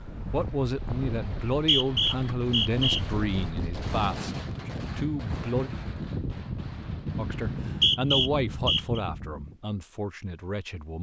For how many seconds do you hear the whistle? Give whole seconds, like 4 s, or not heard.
3 s.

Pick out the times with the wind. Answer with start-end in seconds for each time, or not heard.
0.0-9.6.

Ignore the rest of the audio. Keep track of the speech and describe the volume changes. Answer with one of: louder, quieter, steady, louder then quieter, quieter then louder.
quieter.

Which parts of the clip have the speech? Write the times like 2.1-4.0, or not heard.
0.3-5.7, 7.2-10.9.